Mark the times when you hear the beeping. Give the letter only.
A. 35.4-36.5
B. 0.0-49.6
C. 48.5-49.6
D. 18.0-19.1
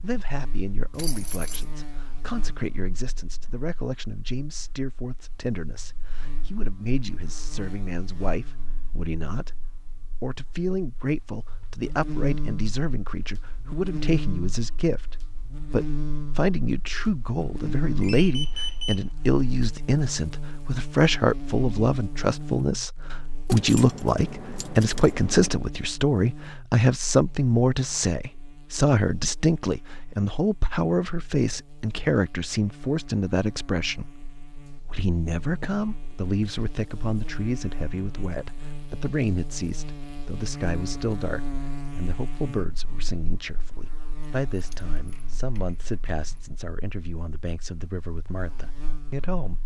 D.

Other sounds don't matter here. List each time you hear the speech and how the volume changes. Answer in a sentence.
The speech can be heard from 0.0 to 49.6 s, getting louder then quieter.